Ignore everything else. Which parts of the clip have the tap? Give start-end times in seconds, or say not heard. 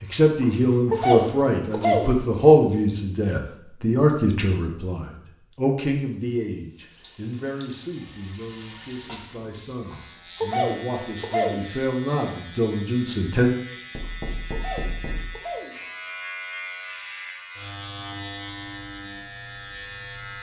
6.6-9.4.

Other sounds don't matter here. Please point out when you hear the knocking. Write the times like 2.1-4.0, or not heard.
13.9-15.4.